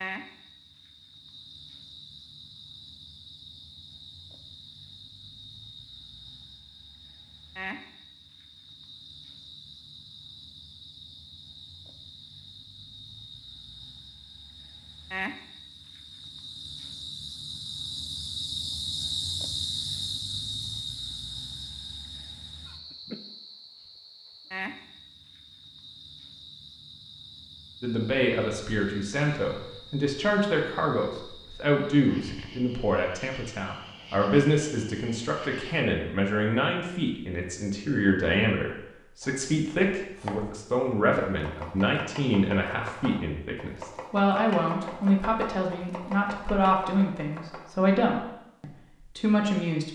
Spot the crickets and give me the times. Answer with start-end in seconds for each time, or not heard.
0.0-35.9.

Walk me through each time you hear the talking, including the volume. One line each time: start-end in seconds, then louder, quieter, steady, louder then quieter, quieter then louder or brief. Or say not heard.
27.8-49.9 steady.